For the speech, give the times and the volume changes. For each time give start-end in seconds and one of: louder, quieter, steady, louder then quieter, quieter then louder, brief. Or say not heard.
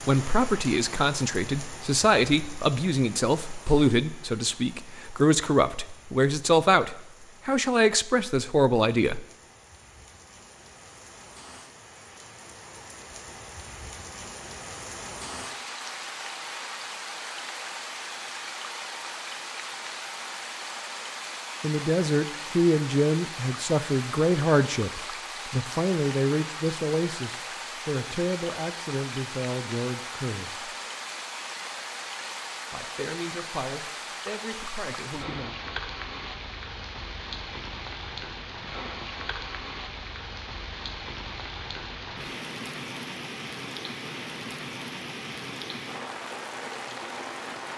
0.0-9.2 steady
21.6-30.7 quieter
32.7-35.5 brief.